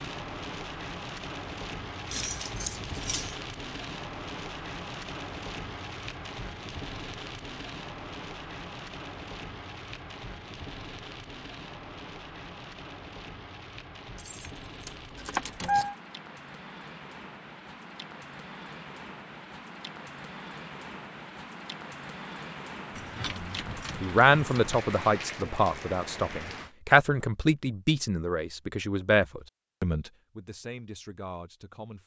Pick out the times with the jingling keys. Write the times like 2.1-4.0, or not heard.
2.0-3.4, 14.2-15.9, 22.9-24.8.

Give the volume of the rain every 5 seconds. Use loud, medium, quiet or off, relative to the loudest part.
loud, loud, medium, medium, loud, loud, off.